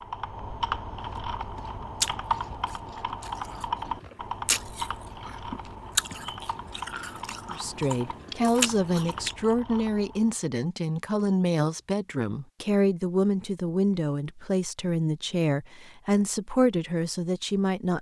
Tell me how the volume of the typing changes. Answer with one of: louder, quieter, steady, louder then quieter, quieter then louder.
quieter.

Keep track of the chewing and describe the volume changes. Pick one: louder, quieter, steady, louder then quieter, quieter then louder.
quieter then louder.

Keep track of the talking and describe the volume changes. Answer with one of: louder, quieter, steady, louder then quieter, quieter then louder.
steady.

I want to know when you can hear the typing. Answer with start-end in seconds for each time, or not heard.
0.0-10.4.